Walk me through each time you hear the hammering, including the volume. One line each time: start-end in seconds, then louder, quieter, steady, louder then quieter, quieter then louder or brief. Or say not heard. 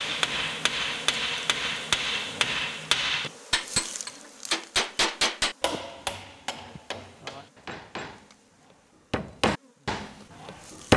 0.0-10.9 quieter then louder.